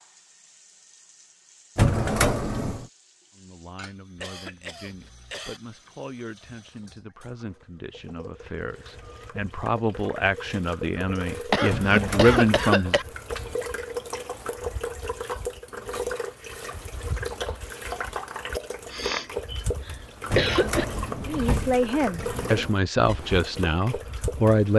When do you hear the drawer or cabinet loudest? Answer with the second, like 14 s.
2 s.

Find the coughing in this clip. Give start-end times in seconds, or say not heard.
4.2-5.6, 11.5-13.1, 18.9-20.9.